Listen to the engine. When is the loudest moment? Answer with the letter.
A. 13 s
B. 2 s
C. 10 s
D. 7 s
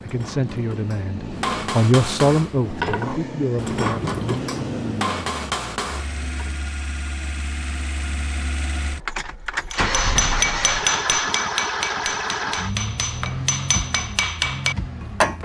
C.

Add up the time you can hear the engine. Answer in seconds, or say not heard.
15 s.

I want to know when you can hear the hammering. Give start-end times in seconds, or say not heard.
0.0-6.5, 9.7-15.3.